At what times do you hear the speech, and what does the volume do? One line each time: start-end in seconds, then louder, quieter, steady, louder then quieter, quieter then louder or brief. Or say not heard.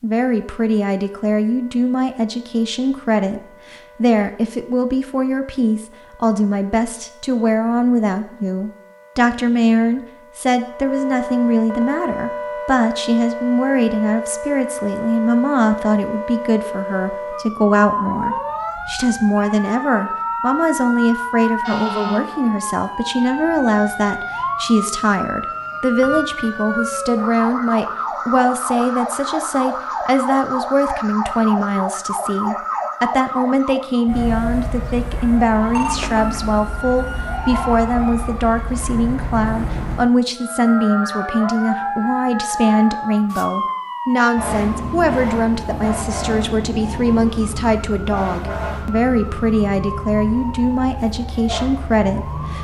0.0-52.5 steady.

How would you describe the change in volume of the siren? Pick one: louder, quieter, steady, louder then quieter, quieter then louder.
louder.